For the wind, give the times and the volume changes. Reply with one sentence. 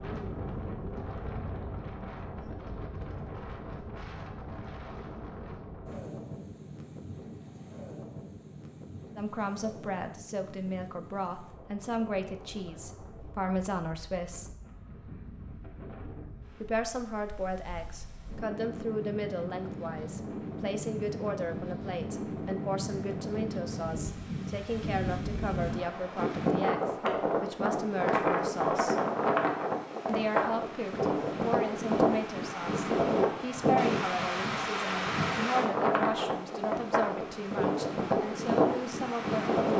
You can hear the wind from 0.0 to 39.7 s, getting quieter then louder.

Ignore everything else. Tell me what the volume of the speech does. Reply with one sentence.
The loudness of the speech stays about the same.